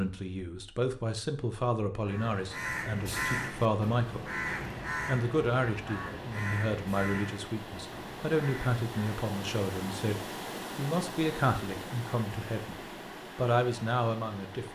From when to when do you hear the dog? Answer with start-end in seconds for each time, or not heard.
not heard.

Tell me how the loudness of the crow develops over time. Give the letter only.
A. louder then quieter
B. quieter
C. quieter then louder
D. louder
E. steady
B.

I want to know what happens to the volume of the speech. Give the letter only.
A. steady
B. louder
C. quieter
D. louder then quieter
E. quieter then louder
A.